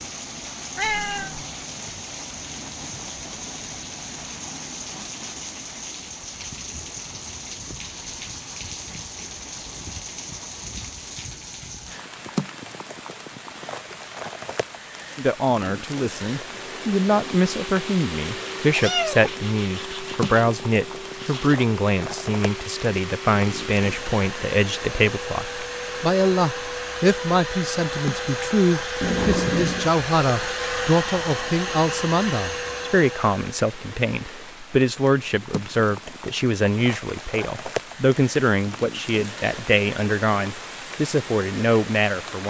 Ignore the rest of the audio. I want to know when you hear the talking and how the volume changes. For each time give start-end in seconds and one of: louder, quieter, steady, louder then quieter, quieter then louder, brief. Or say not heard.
15.2-42.4 steady.